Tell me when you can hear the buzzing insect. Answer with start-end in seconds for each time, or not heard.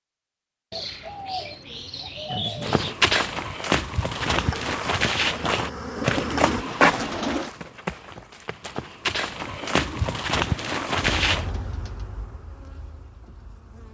4.2-6.7, 11.2-13.8.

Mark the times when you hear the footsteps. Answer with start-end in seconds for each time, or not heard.
2.6-11.5.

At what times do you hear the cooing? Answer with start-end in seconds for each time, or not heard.
0.7-3.0, 6.0-7.5, 9.4-12.1.